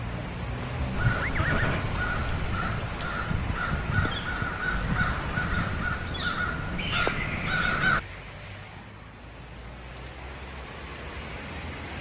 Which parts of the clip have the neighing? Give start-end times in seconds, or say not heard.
1.0-1.9.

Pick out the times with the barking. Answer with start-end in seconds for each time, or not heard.
not heard.